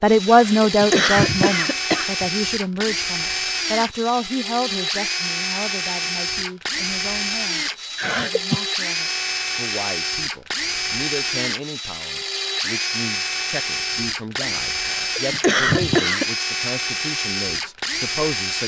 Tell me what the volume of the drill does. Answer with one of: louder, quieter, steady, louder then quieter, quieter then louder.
steady.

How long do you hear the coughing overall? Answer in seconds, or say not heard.
4 s.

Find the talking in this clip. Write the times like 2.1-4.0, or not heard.
0.0-18.6.